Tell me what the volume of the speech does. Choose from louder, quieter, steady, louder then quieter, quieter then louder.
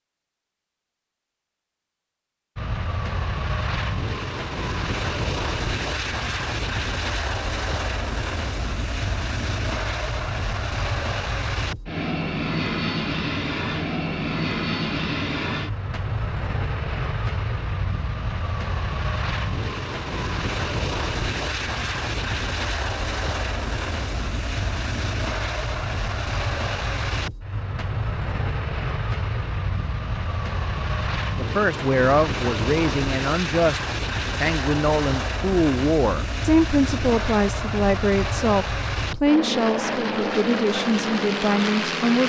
steady.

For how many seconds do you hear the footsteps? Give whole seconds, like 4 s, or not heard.
not heard.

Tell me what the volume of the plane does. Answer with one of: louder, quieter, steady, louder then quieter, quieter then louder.
steady.